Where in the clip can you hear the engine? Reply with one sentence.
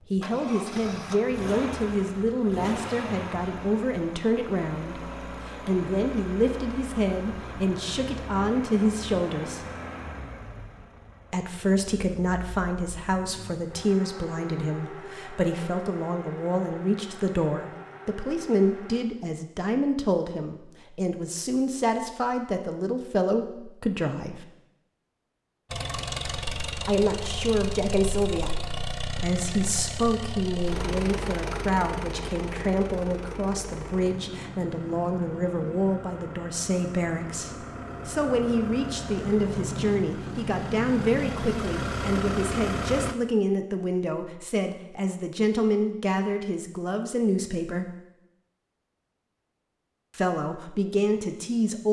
The engine can be heard from 0.0 to 19.0 s and from 25.7 to 43.1 s.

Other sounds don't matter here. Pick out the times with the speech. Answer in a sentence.
You can hear the speech from 0.1 to 9.7 s, from 11.3 to 24.4 s, from 26.9 to 47.9 s and from 50.1 to 51.8 s.